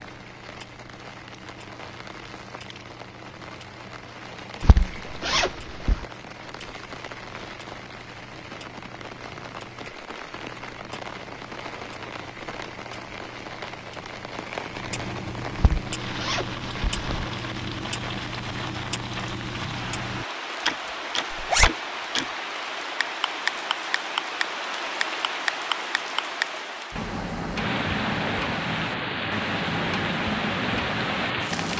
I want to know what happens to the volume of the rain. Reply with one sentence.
The volume of the rain goes up.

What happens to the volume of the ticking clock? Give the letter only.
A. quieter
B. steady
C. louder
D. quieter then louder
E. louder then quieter
C.